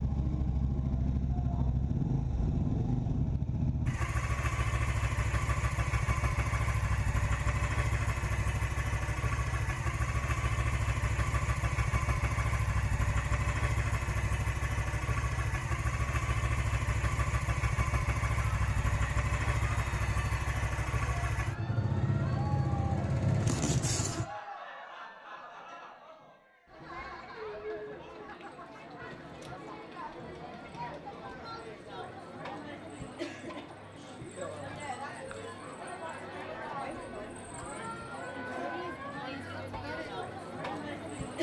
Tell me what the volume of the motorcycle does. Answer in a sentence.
The volume of the motorcycle stays about the same.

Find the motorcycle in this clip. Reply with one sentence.
You can hear the motorcycle from 0.0 to 24.2 s.